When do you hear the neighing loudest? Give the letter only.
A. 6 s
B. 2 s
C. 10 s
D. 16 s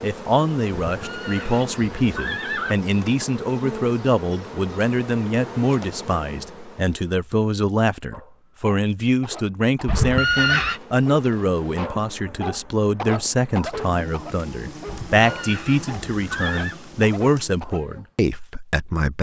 C.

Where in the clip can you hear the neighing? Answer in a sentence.
You can hear the neighing from 0.8 to 2.8 s, from 9.8 to 10.8 s and from 14.8 to 16.8 s.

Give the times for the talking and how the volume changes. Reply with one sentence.
You can hear the talking from 0.0 to 19.1 s, at a steady volume.